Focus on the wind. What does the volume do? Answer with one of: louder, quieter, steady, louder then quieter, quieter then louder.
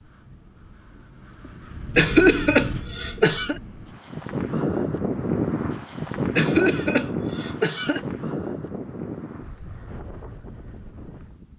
louder then quieter.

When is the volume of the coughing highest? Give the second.
2 s.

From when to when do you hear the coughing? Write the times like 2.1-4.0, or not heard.
1.9-3.6, 6.3-8.0.